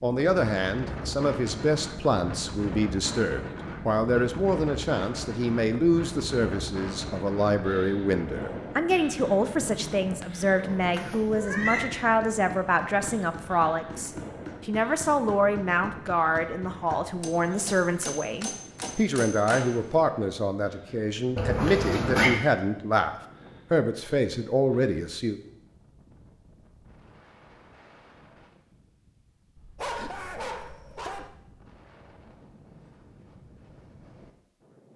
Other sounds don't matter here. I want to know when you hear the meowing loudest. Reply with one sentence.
The loudest moment of the meowing is at 22 seconds.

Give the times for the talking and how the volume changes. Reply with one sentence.
You can hear the talking from 0.0 to 25.4 s, at a steady volume.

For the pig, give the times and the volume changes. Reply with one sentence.
You can't hear the pig here.